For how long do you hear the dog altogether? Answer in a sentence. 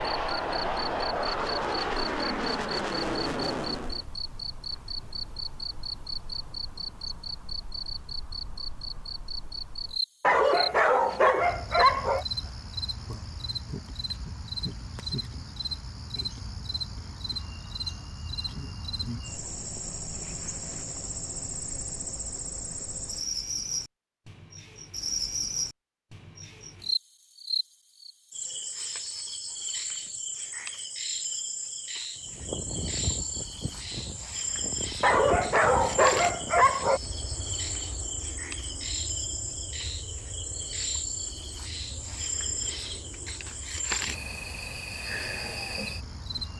The dog can be heard for 4 seconds in total.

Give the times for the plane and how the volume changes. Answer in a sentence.
The plane can be heard from 0.0 to 4.0 s, at a steady volume; and from 32.1 to 46.5 s, getting quieter.